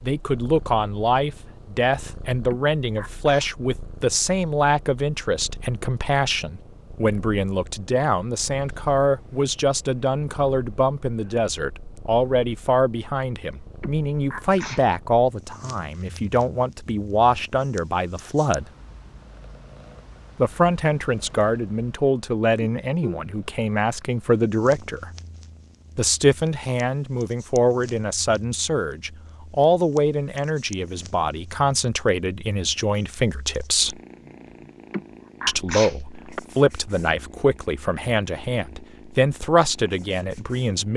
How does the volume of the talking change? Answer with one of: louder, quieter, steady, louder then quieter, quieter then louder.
steady.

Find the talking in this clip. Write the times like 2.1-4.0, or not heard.
0.0-18.7, 20.4-25.1, 25.9-34.0, 35.5-40.9.